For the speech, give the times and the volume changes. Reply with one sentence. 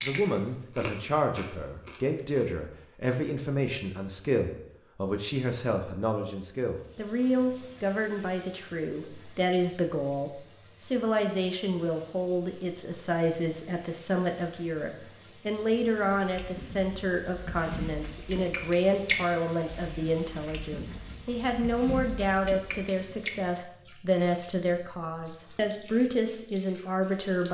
You can hear the speech from 0.0 to 27.4 s, at a steady volume.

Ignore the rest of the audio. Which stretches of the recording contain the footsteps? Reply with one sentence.
You can't hear the footsteps here.